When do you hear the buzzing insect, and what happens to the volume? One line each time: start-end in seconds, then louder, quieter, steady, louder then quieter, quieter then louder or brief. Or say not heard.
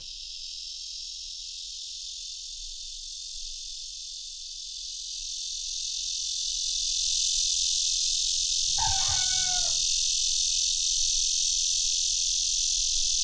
0.0-13.1 louder.